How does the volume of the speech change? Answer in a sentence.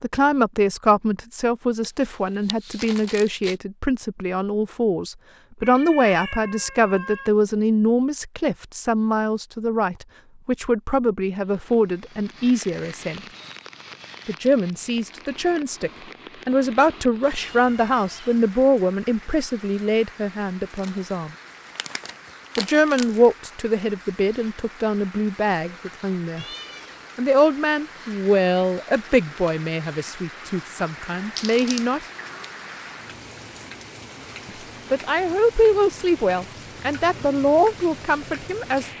The volume of the speech stays about the same.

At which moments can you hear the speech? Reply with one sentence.
The speech can be heard from 0.0 to 13.2 s, from 14.2 to 21.3 s, from 22.6 to 26.4 s, from 27.1 to 32.0 s and from 34.9 to 38.9 s.